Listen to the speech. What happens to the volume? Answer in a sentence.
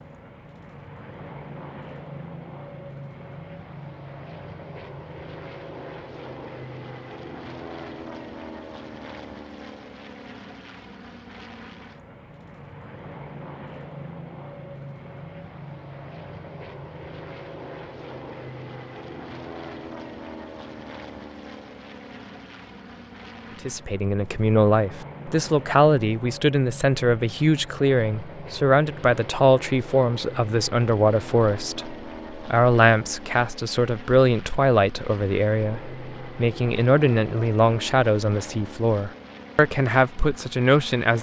The volume of the speech stays about the same.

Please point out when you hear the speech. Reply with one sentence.
You can hear the speech from 23.6 to 41.1 s.